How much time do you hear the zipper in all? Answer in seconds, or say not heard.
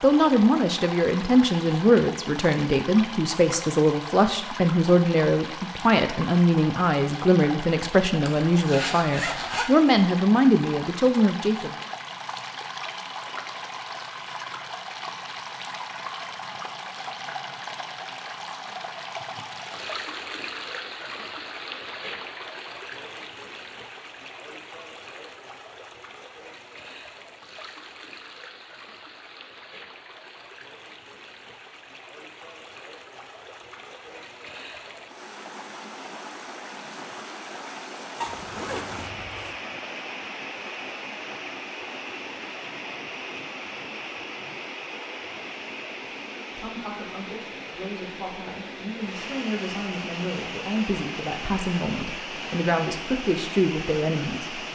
3 s.